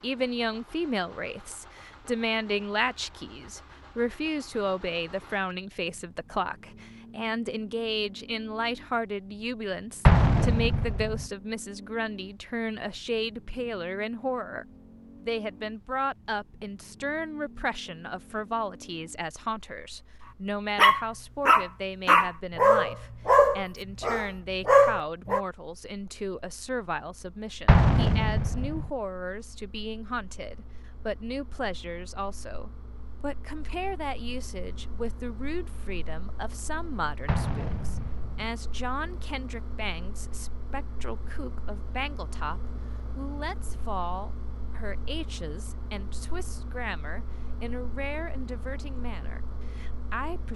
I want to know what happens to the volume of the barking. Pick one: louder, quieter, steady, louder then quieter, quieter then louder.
quieter then louder.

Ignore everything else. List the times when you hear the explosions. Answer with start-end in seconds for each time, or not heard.
10.1-11.2, 27.6-28.9, 37.2-38.5.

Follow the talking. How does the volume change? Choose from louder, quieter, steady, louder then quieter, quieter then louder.
quieter.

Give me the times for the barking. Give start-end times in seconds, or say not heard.
20.8-25.4.